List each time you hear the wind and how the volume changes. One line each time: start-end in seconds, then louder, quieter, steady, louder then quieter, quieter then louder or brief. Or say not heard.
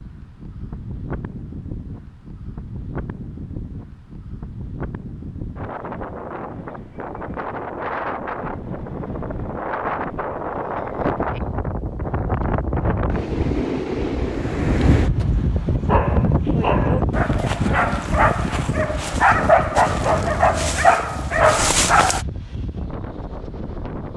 0.0-24.1 louder then quieter.